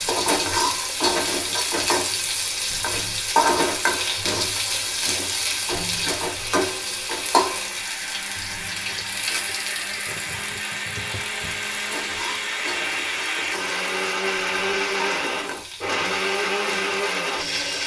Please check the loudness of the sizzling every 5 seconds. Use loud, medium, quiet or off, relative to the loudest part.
loud, loud, quiet, quiet.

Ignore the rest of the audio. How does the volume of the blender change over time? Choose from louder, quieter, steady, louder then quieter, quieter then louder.
louder.